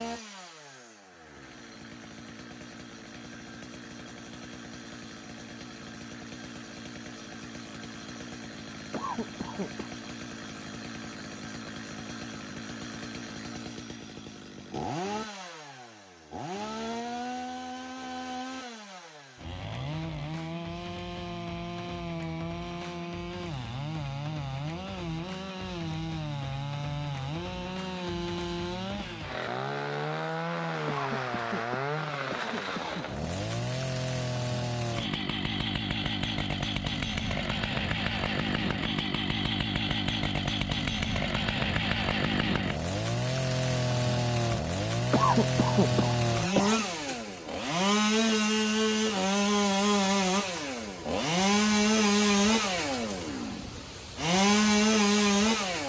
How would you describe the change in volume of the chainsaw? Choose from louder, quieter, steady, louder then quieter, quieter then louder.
louder.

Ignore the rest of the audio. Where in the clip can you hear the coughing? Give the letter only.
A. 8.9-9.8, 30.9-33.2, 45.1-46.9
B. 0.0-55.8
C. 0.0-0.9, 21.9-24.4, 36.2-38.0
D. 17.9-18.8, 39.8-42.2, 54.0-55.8
A.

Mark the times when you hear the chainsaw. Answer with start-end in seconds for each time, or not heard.
0.0-55.8.